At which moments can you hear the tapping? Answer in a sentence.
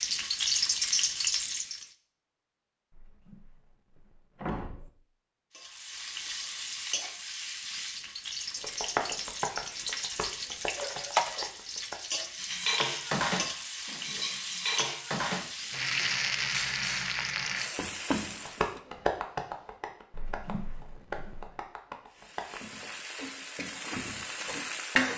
The tapping can be heard from 8.6 to 11.9 s and from 18.4 to 22.6 s.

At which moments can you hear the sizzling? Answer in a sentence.
You can hear the sizzling from 0.0 to 1.9 s, from 5.5 to 18.8 s and from 22.1 to 25.1 s.